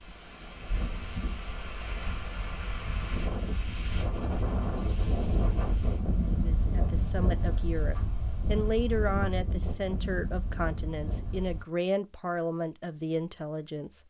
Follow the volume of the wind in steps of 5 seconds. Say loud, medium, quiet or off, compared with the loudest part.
loud, loud, medium.